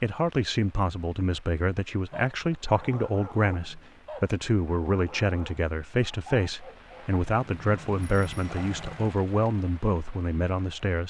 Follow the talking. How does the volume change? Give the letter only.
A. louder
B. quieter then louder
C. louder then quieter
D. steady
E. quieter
D.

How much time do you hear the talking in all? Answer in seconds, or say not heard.
11 s.